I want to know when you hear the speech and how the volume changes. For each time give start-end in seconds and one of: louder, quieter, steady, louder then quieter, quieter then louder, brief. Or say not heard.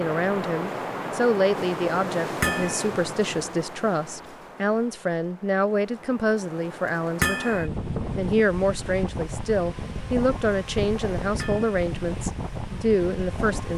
0.0-13.7 steady.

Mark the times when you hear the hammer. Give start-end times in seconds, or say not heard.
2.4-2.9, 7.2-7.7, 11.3-11.8.